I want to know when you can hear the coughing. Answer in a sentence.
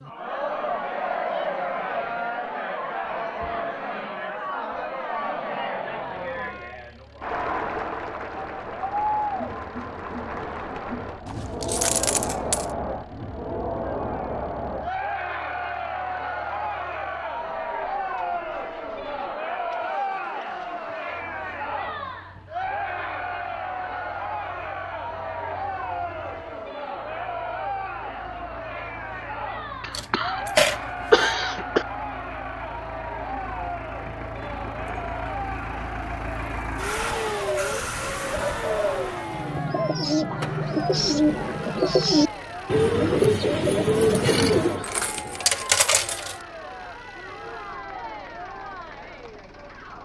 The coughing can be heard from 29.8 to 30.4 s and from 31.1 to 31.9 s.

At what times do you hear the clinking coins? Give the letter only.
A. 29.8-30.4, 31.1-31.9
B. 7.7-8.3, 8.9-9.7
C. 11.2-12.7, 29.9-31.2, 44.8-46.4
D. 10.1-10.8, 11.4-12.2
C.